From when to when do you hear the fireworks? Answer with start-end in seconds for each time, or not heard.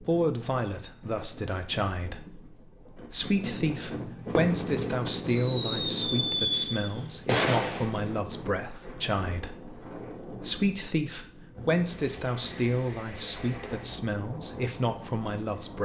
4.2-7.9.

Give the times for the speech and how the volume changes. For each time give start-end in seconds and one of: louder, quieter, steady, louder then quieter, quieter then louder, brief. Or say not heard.
0.0-15.8 steady.